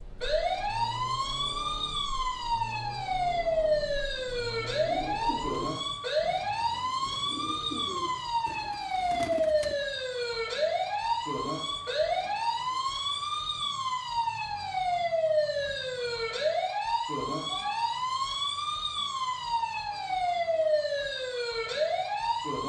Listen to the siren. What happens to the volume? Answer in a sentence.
The volume of the siren stays about the same.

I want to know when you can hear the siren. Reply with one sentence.
You can hear the siren from 0.0 to 22.6 s.